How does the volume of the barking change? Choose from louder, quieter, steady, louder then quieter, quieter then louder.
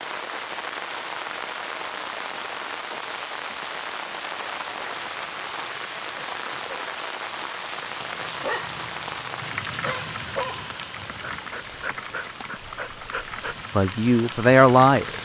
louder.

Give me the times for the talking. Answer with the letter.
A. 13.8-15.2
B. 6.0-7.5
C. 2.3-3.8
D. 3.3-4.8
A.